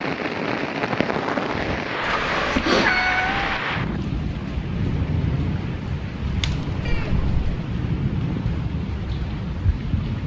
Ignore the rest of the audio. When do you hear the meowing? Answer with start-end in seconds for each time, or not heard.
2.0-3.6, 6.4-7.6.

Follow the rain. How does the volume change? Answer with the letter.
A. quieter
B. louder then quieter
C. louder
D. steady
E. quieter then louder
D.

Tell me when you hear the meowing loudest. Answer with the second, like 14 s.
3 s.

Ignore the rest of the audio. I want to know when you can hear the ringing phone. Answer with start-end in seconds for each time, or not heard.
not heard.